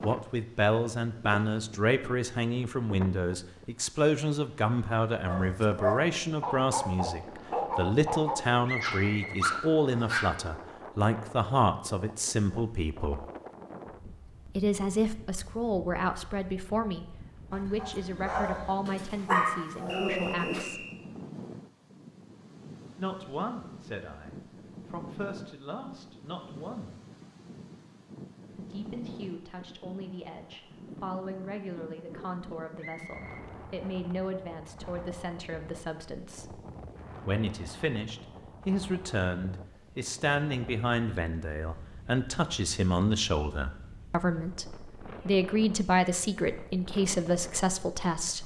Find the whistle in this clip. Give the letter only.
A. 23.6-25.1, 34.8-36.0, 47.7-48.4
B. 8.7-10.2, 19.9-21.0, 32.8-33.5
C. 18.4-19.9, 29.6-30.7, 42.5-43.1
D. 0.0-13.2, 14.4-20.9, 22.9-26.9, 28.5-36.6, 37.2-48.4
B.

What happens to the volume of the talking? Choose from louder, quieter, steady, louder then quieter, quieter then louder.
quieter then louder.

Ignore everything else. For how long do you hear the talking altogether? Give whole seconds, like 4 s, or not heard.
43 s.